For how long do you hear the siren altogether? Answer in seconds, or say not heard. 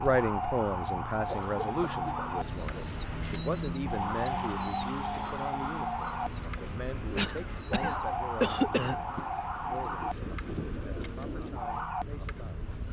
13 s.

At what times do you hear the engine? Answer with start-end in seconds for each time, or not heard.
0.2-11.2.